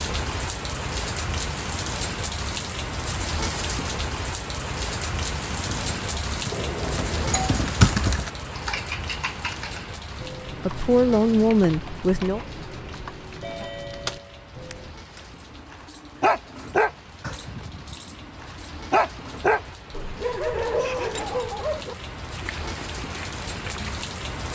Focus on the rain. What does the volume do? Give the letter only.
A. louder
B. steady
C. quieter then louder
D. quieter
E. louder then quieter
C.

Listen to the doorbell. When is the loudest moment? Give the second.
7 s.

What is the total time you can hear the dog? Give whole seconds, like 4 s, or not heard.
8 s.